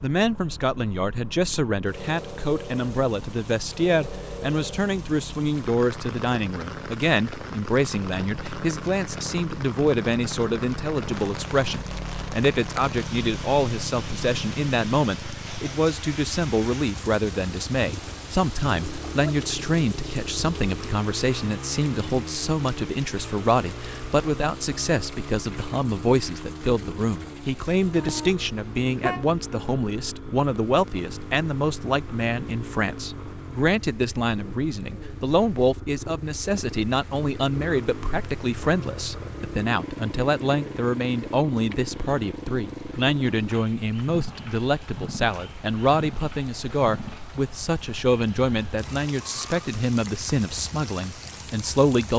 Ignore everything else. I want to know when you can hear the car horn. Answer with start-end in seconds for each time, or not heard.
27.9-29.4.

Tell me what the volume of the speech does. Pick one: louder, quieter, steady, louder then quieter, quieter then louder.
steady.